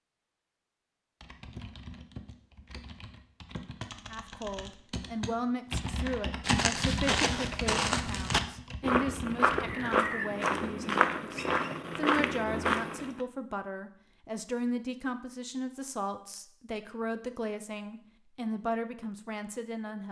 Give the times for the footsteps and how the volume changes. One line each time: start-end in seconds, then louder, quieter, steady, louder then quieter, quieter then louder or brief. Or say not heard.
6.4-13.2 steady.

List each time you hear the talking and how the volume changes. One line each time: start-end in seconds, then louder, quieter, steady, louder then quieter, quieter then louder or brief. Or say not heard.
4.0-20.0 steady.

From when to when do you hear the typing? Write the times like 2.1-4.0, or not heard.
1.2-10.1.